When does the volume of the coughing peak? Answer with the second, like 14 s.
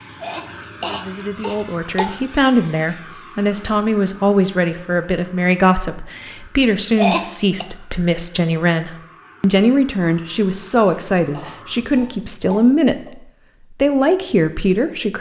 7 s.